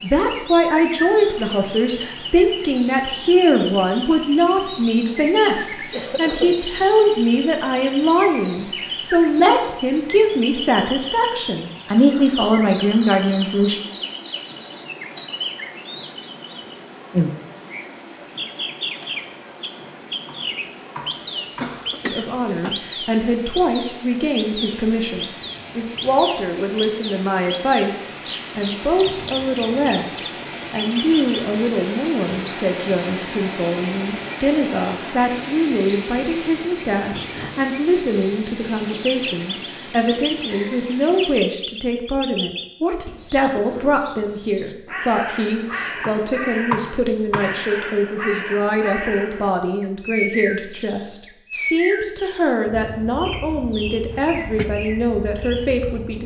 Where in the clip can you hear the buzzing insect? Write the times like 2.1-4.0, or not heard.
not heard.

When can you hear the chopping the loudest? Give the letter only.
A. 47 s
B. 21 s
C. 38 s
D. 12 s
A.